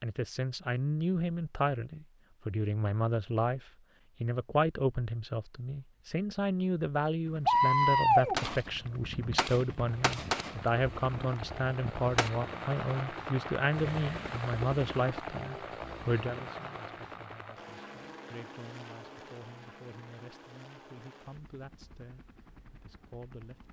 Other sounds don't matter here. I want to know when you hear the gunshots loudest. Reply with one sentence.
The loudest moment of the gunshots is at 8 seconds.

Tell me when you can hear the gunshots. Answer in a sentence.
You can hear the gunshots from 7.5 to 12.3 s.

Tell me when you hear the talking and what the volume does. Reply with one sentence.
You can hear the talking from 0.0 to 23.6 s, getting quieter.